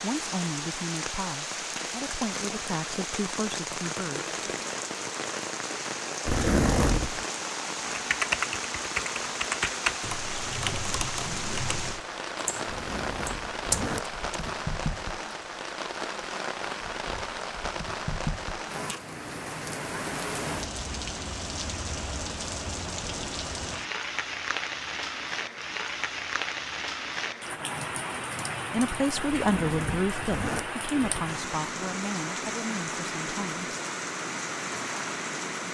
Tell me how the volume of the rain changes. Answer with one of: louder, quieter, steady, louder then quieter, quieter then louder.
steady.